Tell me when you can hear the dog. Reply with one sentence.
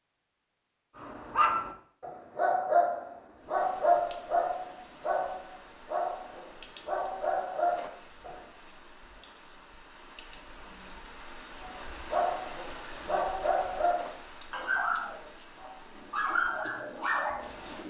The dog can be heard from 0.9 to 8.4 s and from 11.6 to 17.8 s.